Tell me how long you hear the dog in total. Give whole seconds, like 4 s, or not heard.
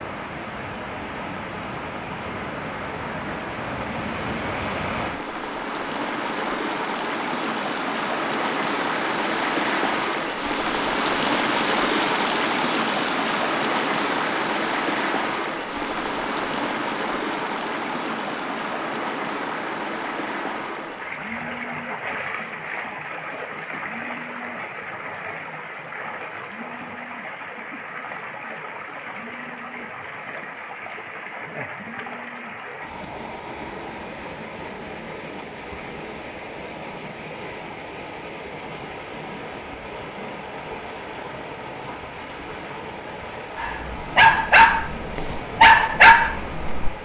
3 s.